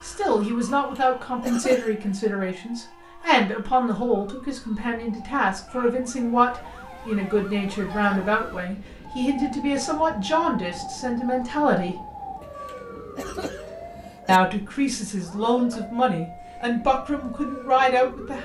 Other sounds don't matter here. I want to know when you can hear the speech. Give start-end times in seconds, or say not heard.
0.0-11.9, 14.2-18.3.